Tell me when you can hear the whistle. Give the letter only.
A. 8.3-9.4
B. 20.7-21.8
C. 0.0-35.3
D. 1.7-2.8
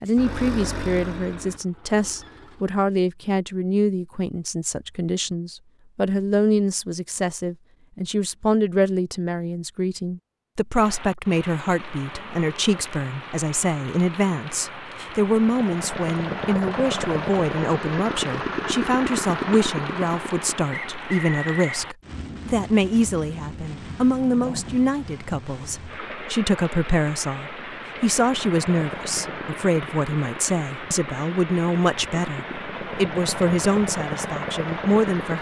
B.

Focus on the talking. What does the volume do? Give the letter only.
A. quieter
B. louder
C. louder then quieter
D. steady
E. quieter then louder
D.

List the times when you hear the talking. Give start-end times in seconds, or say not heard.
0.0-35.3.